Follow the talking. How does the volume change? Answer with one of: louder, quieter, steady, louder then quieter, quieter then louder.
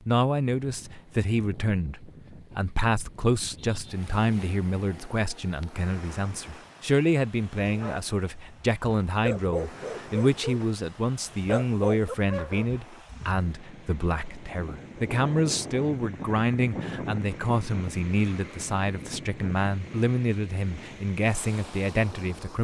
steady.